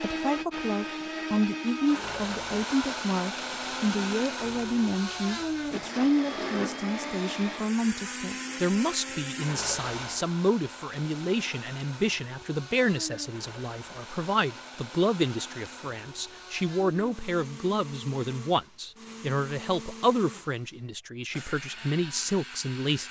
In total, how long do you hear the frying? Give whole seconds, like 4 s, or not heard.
not heard.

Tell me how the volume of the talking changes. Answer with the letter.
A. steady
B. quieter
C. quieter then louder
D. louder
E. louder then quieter
A.